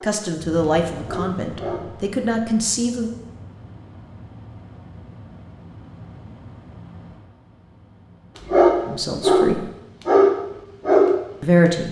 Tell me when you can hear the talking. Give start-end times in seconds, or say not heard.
0.0-3.1, 8.8-9.7, 11.4-11.8.